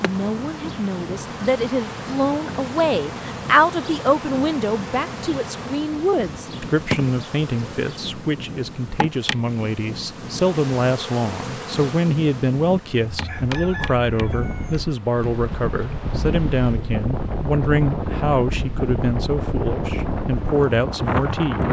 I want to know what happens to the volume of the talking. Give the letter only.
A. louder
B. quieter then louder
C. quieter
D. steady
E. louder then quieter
D.